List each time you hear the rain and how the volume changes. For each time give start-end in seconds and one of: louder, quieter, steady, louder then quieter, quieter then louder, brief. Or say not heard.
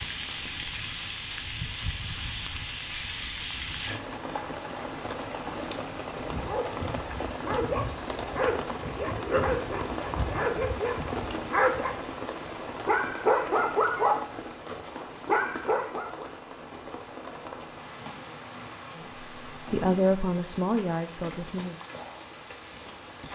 0.0-23.3 quieter.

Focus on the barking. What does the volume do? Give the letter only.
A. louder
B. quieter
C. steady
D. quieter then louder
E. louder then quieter
A.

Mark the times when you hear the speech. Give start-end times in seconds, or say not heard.
18.9-21.8.